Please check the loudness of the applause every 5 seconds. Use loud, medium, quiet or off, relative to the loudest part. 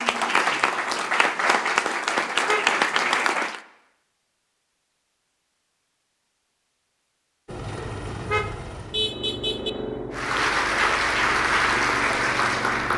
loud, off, loud.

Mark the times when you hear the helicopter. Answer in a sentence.
You can hear the helicopter from 7.5 to 12.9 s.